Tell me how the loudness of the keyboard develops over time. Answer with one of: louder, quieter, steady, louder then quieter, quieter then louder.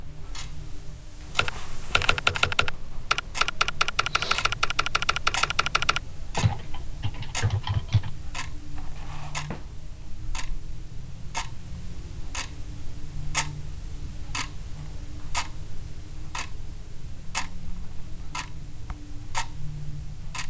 quieter.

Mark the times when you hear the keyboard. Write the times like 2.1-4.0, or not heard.
1.3-8.1.